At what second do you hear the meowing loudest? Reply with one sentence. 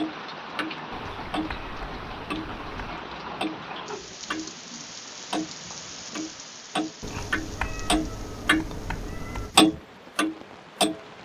The volume of the meowing peaks at 8 seconds.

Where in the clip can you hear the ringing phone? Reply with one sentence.
You can't hear the ringing phone here.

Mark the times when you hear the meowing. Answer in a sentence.
The meowing can be heard from 0.9 to 3.0 s and from 7.0 to 9.6 s.